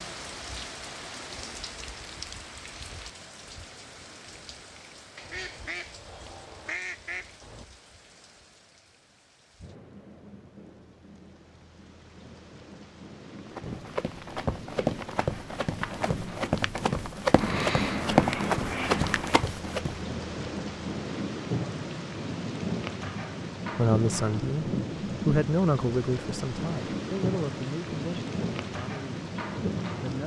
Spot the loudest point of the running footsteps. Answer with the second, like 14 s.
18 s.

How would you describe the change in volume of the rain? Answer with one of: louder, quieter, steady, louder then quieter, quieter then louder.
quieter then louder.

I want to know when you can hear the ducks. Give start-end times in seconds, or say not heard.
5.2-7.7, 17.4-19.4.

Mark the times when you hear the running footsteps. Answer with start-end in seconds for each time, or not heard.
13.4-19.9.